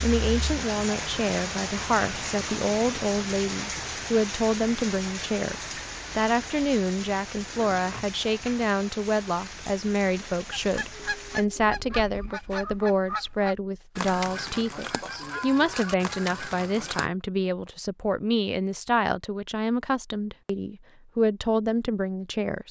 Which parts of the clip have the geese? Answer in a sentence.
The geese can be heard from 10.6 to 17.1 s.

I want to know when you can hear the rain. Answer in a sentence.
You can hear the rain from 0.0 to 11.4 s.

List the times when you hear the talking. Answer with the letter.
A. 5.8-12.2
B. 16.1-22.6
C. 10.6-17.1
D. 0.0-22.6
D.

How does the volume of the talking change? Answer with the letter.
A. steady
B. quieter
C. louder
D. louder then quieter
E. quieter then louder
A.